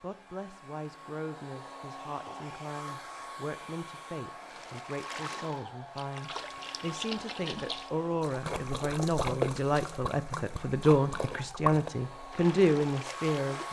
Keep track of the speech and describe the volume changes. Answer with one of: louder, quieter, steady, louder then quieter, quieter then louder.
louder.